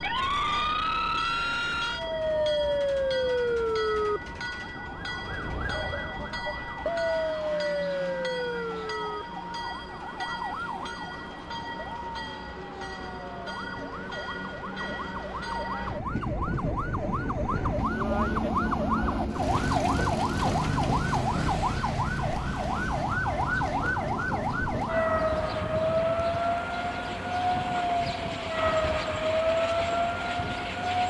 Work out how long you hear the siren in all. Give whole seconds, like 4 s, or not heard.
31 s.